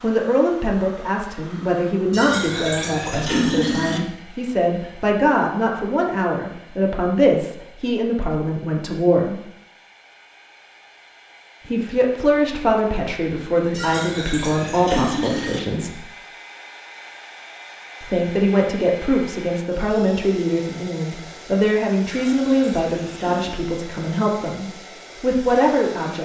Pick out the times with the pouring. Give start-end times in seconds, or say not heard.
2.1-4.0, 13.7-15.6, 22.1-23.5.